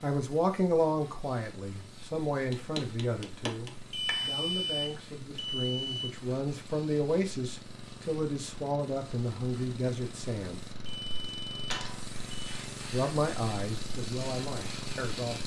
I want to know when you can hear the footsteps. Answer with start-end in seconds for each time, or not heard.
not heard.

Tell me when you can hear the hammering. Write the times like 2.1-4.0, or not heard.
2.5-4.3.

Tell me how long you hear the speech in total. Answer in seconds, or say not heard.
13 s.